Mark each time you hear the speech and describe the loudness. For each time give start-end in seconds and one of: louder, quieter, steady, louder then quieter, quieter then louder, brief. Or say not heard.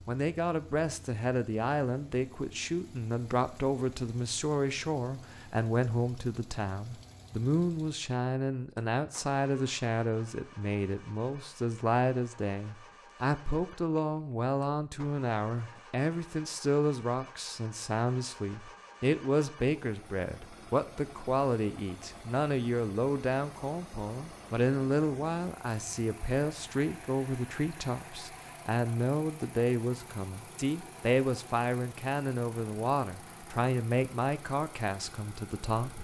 0.1-35.9 steady.